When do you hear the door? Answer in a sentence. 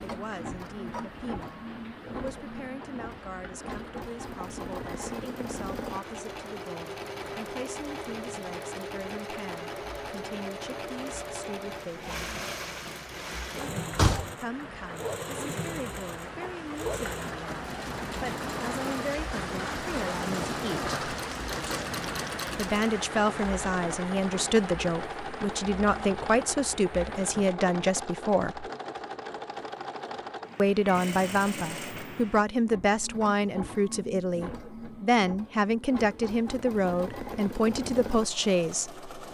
The door can be heard from 13.6 to 14.3 s.